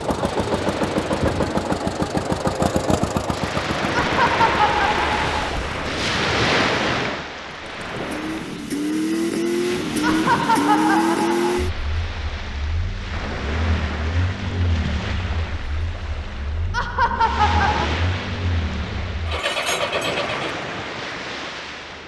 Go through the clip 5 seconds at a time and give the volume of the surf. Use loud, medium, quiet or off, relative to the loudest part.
loud, loud, medium, medium, medium.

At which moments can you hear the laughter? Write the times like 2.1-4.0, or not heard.
3.9-5.5, 10.0-11.6, 16.7-17.9.